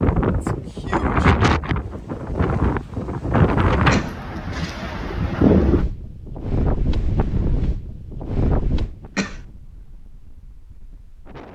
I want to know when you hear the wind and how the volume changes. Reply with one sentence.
The wind can be heard from 0.0 to 11.5 s, getting quieter.